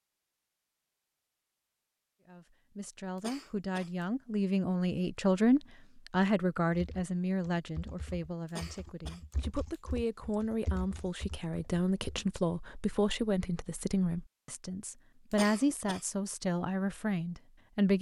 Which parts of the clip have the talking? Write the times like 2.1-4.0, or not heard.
2.2-17.9.